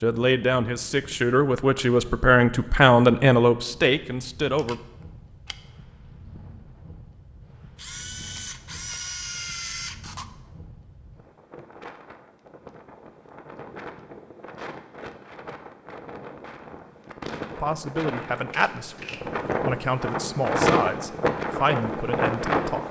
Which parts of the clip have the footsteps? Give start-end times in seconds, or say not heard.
not heard.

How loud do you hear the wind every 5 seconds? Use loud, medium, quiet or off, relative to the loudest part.
quiet, quiet, quiet, medium, loud.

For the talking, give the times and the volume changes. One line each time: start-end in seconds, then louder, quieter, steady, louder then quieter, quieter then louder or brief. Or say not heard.
0.0-4.8 louder then quieter
17.5-22.8 quieter then louder.